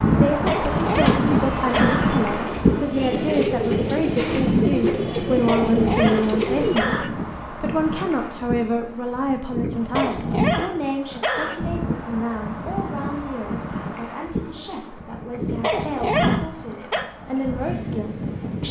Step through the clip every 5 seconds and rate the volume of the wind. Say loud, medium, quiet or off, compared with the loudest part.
loud, medium, medium, medium.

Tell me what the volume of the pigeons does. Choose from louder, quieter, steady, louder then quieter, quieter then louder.
louder.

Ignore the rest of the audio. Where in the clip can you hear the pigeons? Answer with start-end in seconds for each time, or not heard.
0.4-6.8.